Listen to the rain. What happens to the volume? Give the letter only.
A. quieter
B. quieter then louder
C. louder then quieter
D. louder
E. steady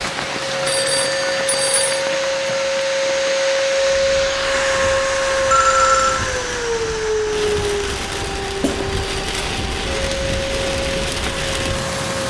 B.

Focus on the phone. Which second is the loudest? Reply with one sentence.
The volume of the phone peaks at 6 seconds.